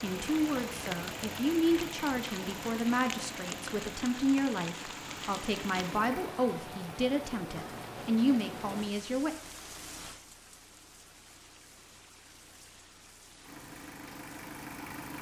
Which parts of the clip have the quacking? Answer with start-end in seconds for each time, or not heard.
not heard.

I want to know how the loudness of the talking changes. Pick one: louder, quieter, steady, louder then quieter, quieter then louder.
steady.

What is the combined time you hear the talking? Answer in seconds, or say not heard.
9 s.